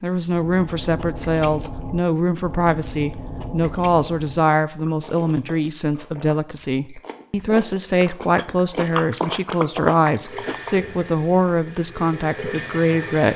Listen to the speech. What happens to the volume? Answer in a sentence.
The loudness of the speech stays about the same.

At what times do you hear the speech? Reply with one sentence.
The speech can be heard from 0.0 to 13.3 s.